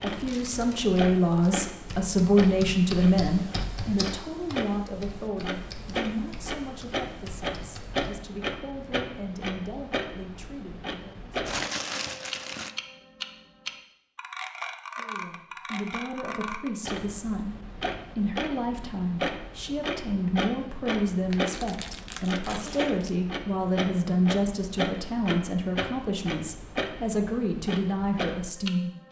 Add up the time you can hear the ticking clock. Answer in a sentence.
You can hear the ticking clock for 29 seconds altogether.